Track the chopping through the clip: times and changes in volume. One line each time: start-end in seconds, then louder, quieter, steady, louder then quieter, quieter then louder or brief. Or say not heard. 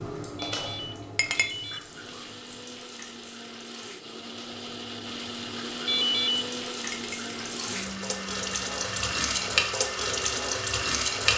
not heard.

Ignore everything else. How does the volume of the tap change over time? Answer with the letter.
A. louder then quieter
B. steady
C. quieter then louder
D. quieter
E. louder
C.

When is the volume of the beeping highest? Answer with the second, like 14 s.
6 s.